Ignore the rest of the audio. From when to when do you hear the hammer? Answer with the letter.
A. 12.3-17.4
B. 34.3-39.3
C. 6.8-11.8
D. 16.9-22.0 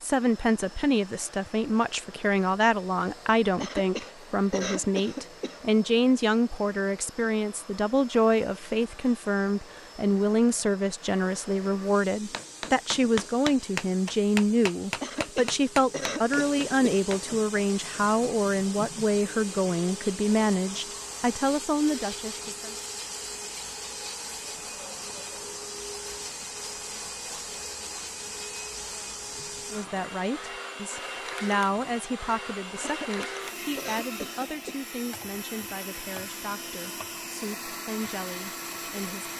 A.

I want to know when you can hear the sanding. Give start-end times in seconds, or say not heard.
not heard.